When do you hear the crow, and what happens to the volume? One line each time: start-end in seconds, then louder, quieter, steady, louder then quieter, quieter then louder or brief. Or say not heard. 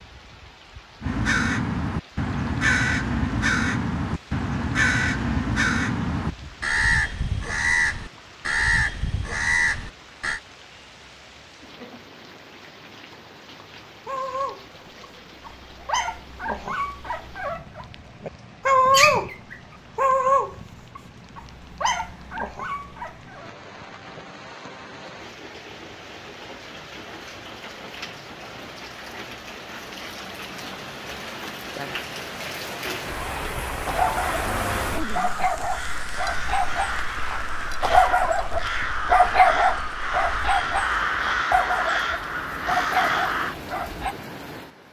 1.0-10.4 steady
34.1-43.5 louder.